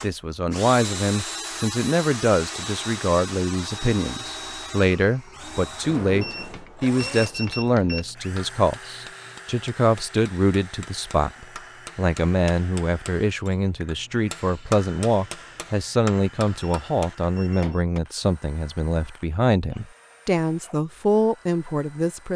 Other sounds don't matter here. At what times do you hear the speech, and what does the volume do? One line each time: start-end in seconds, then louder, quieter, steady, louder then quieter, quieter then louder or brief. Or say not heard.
0.0-22.3 steady.